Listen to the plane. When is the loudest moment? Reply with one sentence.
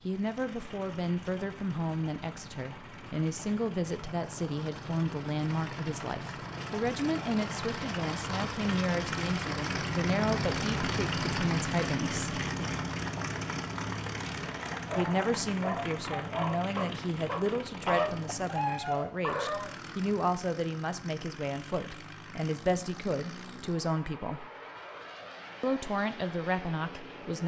The volume of the plane peaks at 11 seconds.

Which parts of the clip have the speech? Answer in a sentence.
You can hear the speech from 0.1 to 12.2 s, from 14.9 to 24.4 s and from 25.6 to 27.4 s.